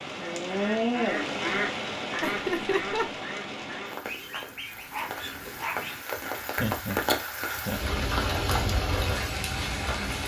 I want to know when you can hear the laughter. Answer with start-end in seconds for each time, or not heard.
2.2-3.2, 6.5-8.0.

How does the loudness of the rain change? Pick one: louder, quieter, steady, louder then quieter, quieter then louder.
quieter then louder.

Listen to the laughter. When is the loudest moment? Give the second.
3 s.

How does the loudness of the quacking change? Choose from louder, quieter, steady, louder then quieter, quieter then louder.
quieter.